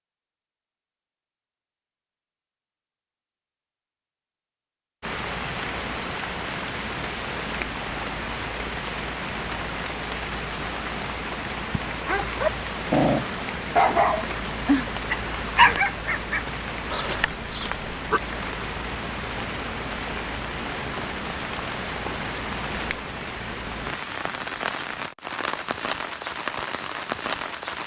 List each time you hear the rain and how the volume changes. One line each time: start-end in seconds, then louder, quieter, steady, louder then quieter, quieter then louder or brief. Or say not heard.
5.0-27.8 steady.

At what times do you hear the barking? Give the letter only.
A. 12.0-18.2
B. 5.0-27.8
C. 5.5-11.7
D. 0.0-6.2
A.